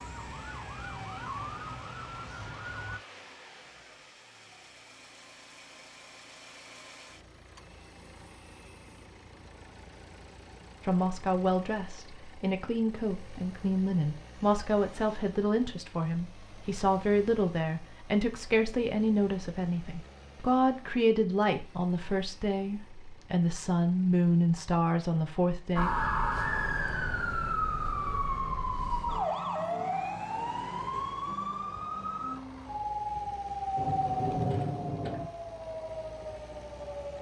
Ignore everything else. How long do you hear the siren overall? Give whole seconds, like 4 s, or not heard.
14 s.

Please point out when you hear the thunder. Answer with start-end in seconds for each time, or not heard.
33.8-35.3.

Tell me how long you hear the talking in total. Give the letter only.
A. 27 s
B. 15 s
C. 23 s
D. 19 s
B.